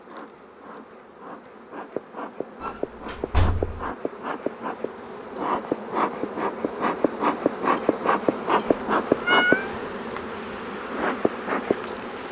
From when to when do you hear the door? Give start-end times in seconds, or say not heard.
2.6-3.9.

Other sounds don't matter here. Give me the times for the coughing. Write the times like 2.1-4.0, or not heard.
not heard.